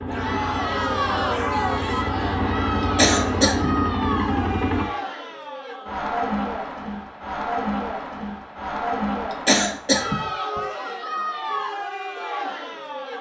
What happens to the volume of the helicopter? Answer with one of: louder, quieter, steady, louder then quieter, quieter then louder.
louder.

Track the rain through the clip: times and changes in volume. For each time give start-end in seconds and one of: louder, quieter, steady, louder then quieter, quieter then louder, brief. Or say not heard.
not heard.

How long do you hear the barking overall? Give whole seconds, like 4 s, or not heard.
not heard.